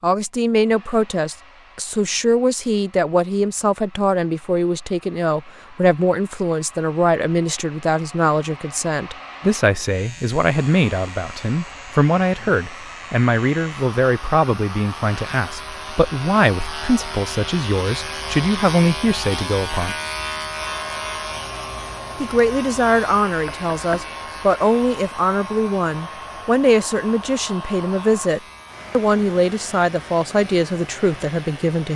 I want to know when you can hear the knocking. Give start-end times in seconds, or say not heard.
23.4-24.1.